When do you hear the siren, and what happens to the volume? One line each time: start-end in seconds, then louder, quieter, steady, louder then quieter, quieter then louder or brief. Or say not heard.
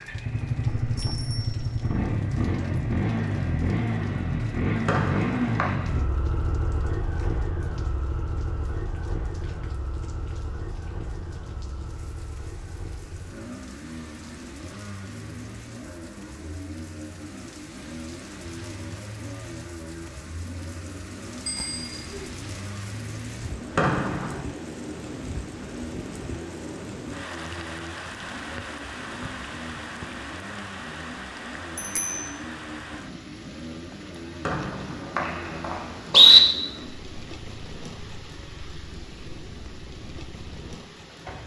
not heard.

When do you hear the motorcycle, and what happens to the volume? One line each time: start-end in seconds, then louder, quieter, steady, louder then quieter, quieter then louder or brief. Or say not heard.
0.0-41.4 quieter.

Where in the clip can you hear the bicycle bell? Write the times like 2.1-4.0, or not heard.
0.7-2.0, 21.4-22.3, 31.8-32.4.